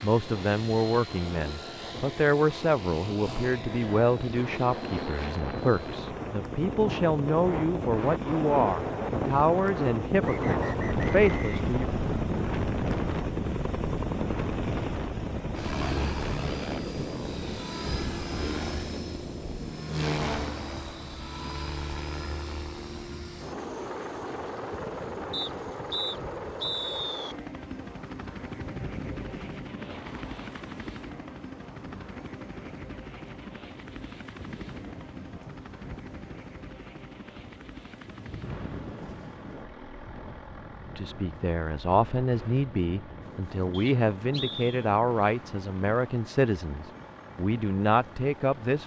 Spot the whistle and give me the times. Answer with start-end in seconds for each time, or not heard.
10.2-12.2, 25.3-27.4, 43.7-44.9.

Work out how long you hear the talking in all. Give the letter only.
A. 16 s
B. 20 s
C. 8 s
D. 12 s
B.